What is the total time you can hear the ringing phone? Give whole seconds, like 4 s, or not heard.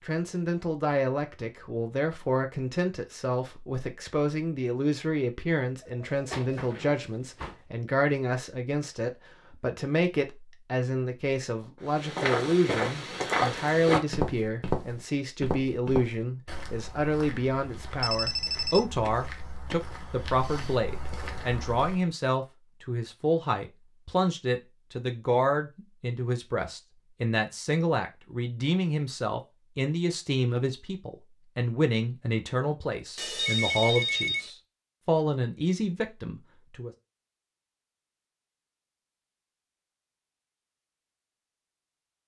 4 s.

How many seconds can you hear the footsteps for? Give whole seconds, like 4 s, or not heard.
10 s.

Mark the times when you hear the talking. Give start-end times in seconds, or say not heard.
0.0-36.9.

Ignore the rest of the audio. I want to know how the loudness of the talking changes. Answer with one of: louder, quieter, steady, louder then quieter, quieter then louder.
steady.